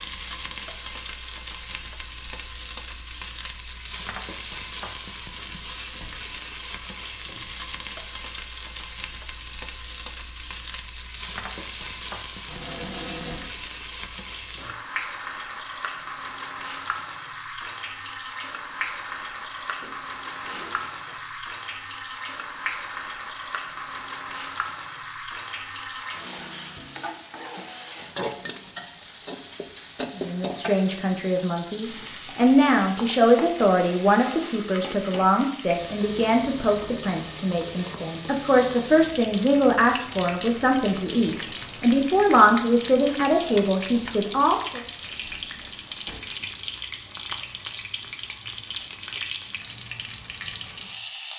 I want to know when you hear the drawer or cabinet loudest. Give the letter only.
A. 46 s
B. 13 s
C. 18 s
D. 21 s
B.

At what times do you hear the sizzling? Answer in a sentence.
The sizzling can be heard from 0.0 to 51.3 s.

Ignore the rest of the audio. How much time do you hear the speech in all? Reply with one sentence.
You can hear the speech for 15 seconds altogether.